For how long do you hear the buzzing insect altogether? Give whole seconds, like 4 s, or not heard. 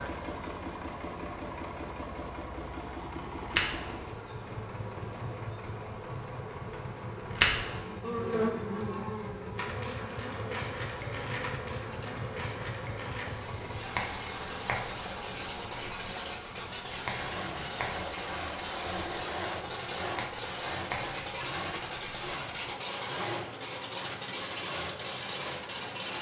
26 s.